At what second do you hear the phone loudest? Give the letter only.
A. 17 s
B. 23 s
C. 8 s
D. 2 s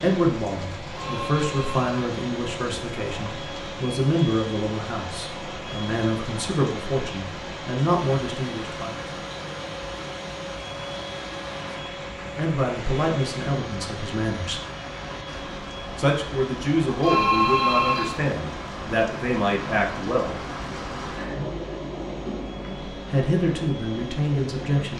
A.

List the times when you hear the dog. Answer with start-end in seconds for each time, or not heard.
not heard.